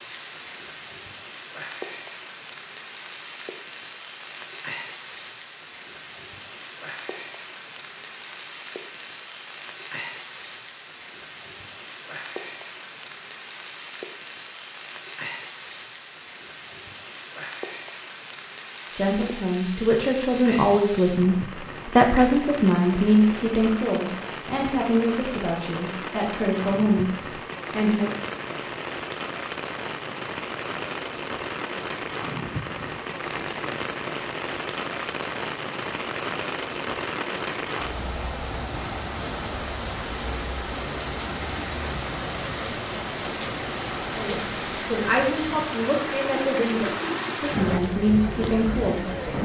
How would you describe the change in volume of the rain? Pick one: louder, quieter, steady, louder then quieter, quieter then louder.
louder.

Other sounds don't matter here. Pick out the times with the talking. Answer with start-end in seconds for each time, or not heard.
18.9-28.1, 44.1-49.4.